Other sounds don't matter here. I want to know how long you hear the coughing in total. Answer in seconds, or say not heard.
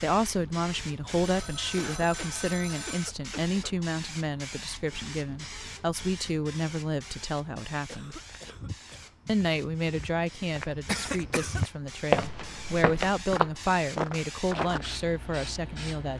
4 s.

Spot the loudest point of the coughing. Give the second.
11 s.